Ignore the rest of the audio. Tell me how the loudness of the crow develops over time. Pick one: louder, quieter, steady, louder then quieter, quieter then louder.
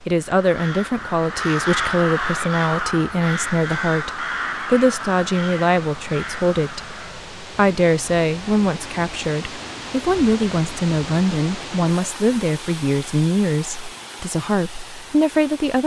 quieter.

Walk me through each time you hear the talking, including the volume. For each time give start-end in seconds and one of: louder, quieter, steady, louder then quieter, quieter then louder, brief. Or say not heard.
0.1-15.8 steady.